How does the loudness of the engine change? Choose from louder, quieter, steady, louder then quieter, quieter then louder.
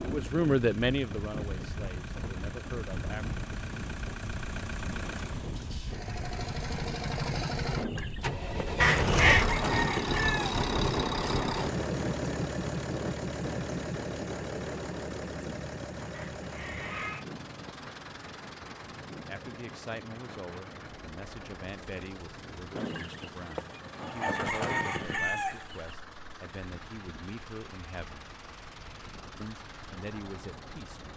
louder then quieter.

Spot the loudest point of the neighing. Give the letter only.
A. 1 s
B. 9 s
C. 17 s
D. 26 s
B.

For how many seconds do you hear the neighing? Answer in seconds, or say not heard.
2 s.